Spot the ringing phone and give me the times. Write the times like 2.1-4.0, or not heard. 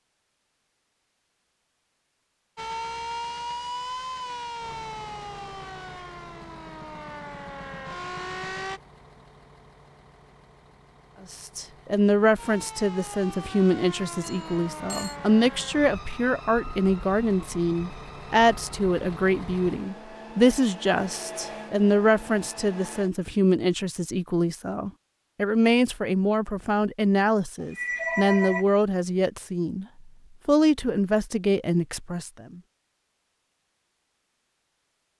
14.2-15.2, 27.6-28.6.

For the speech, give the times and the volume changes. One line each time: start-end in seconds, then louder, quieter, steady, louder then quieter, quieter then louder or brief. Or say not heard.
11.3-29.9 steady
30.4-32.6 brief.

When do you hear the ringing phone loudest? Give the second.
28 s.